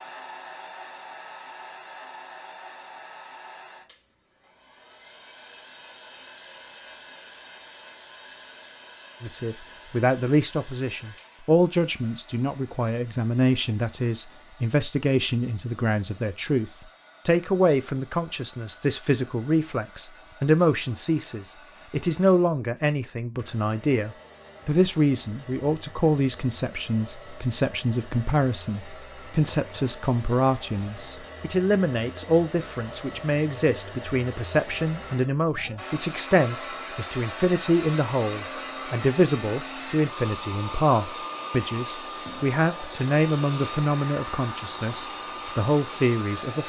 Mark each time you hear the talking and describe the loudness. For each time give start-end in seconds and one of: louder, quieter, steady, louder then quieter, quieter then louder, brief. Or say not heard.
9.2-46.6 steady.